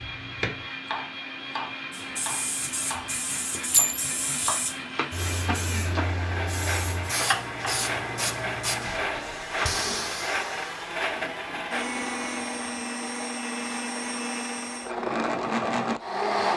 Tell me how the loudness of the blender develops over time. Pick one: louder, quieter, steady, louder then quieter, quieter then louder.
louder.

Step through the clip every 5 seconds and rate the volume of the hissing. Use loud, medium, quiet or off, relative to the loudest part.
loud, loud, medium, off.